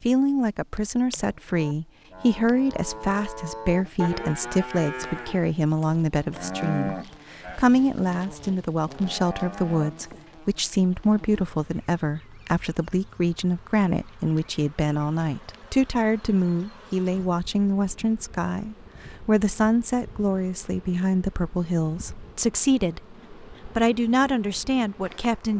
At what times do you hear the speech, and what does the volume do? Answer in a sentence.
You can hear the speech from 0.0 to 25.5 s, at a steady volume.